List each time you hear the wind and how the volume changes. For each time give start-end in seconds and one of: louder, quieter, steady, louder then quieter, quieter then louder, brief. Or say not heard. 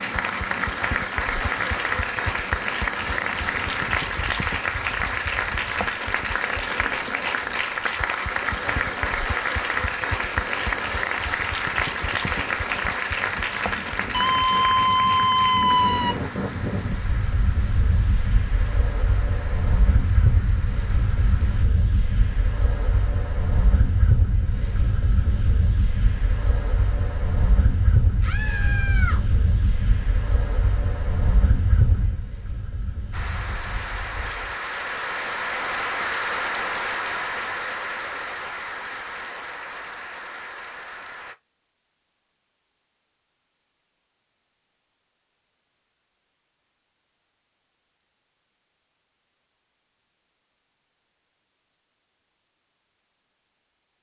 0.0-34.5 louder.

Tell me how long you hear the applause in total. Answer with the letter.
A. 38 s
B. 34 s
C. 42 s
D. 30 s
D.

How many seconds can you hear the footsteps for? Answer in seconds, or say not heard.
not heard.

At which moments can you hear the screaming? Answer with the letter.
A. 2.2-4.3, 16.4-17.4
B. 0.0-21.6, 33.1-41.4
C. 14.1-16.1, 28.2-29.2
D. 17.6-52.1
C.